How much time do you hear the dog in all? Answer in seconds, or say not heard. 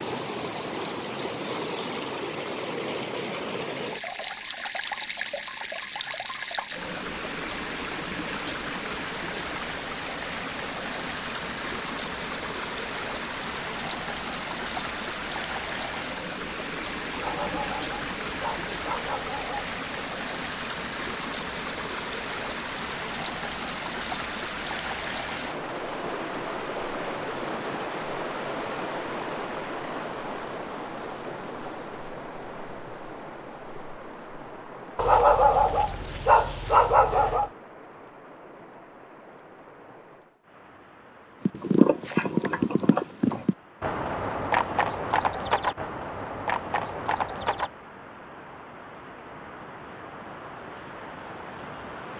5 s.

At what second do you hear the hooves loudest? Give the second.
42 s.